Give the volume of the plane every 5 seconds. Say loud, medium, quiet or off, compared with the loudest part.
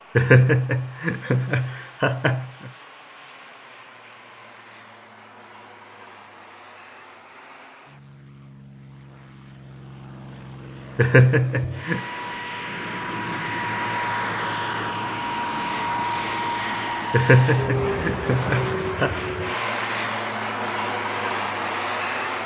quiet, quiet, loud, loud, loud.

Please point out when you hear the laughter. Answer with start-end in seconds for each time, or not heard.
0.1-2.7, 10.9-12.0, 17.1-19.1.